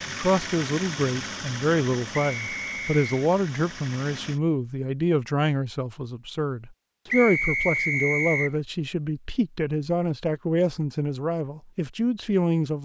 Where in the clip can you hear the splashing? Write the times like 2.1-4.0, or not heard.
not heard.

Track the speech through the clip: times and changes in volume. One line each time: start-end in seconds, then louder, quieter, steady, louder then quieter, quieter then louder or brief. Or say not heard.
0.1-12.8 steady.